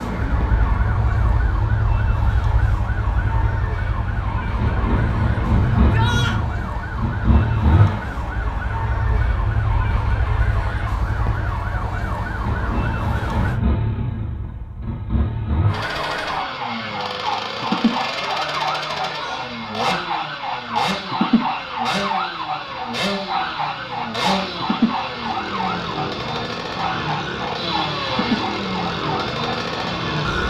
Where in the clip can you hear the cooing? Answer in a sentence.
You can't hear the cooing here.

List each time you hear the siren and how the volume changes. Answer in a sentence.
The siren can be heard from 0.0 to 13.6 s, at a steady volume; and from 15.7 to 30.4 s, at a steady volume.